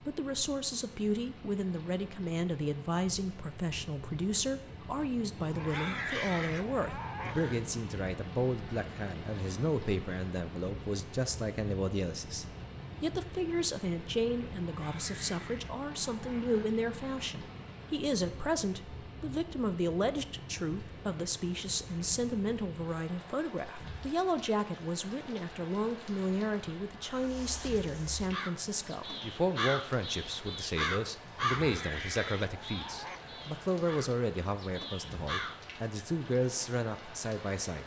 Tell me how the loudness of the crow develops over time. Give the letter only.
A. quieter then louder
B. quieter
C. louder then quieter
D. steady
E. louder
C.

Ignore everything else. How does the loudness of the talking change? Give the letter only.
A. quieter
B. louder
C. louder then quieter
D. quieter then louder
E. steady
E.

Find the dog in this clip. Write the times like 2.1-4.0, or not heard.
5.4-7.7, 14.7-16.7, 31.2-33.2.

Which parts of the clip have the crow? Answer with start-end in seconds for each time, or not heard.
27.0-35.6.